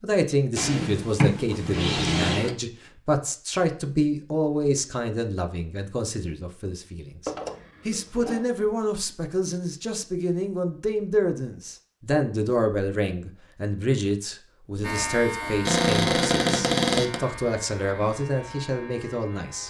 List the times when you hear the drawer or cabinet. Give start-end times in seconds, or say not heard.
0.6-2.5, 7.2-8.4, 15.7-17.2.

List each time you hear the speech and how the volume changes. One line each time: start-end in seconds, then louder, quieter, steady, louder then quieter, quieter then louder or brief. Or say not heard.
0.0-19.6 steady.